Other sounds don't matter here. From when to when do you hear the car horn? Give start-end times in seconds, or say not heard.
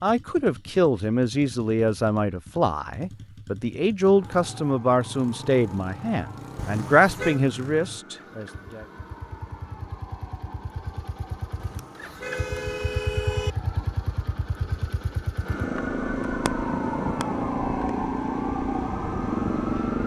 6.5-7.4, 11.6-13.6.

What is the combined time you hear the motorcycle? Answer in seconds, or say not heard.
20 s.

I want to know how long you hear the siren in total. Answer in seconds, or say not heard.
16 s.